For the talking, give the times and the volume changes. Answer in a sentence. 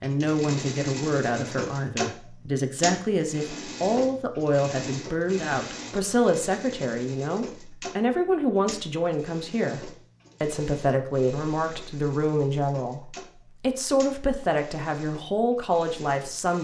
You can hear the talking from 0.0 to 16.5 s, at a steady volume.